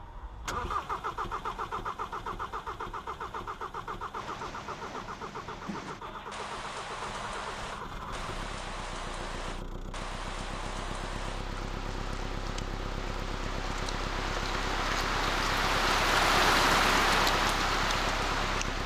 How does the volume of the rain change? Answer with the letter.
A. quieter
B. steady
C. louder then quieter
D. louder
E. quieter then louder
D.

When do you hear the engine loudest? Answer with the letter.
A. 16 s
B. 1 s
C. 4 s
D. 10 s
B.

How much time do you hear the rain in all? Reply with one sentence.
The rain can be heard for 15 seconds in total.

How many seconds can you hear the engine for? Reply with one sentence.
You can hear the engine for 19 seconds altogether.